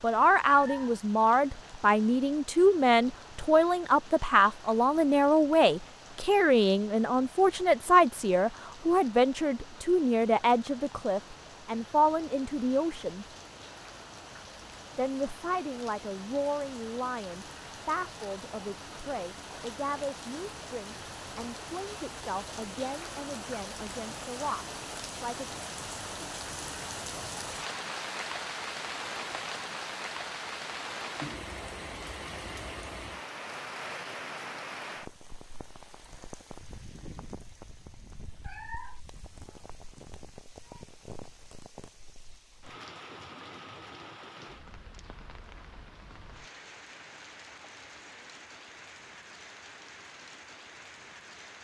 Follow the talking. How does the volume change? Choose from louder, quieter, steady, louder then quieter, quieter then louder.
quieter.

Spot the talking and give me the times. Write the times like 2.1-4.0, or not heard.
0.0-13.2, 14.9-25.5.